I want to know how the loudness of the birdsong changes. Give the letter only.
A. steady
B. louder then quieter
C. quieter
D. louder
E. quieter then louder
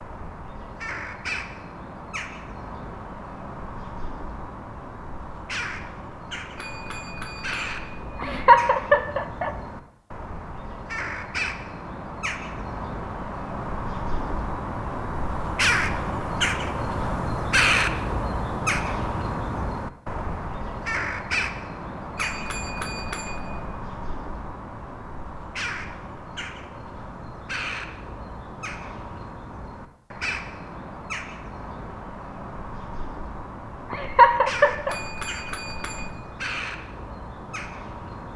B.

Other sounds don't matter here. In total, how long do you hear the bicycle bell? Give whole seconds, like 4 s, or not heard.
5 s.